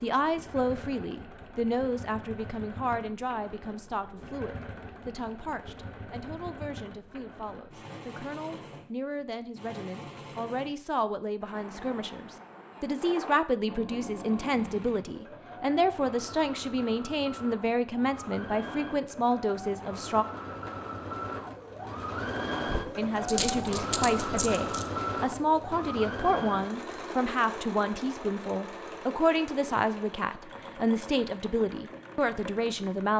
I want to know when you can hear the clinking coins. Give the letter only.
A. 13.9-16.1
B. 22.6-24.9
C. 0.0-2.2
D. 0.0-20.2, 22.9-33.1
B.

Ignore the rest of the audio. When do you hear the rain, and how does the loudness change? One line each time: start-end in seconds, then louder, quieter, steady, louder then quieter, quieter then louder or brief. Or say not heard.
not heard.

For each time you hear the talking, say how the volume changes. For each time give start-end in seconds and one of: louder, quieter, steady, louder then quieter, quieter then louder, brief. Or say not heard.
0.0-20.2 quieter then louder
22.9-33.1 steady.